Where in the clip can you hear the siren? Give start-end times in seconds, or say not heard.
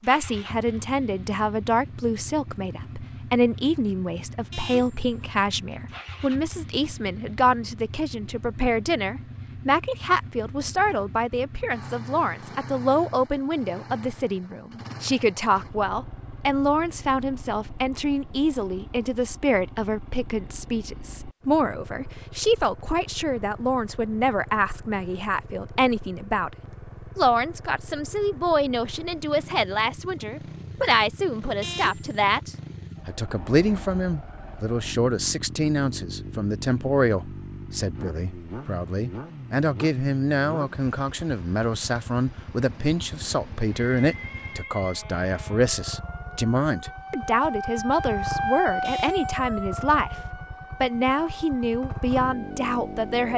43.7-53.1.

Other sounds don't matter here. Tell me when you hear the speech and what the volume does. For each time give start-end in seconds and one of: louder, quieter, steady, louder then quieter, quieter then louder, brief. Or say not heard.
0.0-53.3 steady.